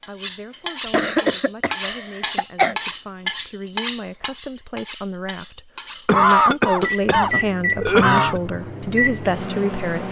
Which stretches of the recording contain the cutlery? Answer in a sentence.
You can hear the cutlery from 0.0 to 7.0 s.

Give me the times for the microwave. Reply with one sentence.
You can hear the microwave from 6.8 to 10.0 s.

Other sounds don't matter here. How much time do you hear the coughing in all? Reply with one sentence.
You can hear the coughing for 4 seconds altogether.